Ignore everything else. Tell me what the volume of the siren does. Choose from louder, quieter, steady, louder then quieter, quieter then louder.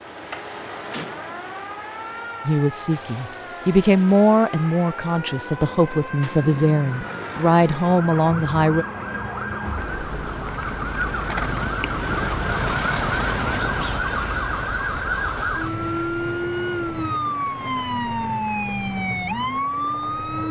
louder.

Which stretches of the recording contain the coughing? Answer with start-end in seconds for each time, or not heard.
not heard.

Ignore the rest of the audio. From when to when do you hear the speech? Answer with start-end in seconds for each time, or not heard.
2.5-8.8.